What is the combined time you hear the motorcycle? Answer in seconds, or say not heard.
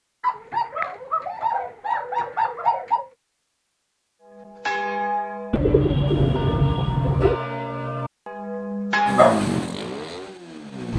2 s.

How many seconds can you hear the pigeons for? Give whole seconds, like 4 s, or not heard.
5 s.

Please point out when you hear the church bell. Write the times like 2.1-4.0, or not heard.
4.2-9.3.